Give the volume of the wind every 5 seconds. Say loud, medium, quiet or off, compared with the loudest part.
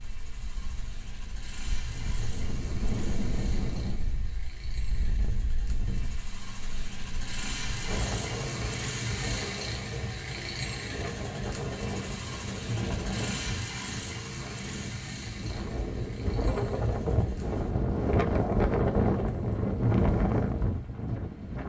medium, medium, medium, loud, loud.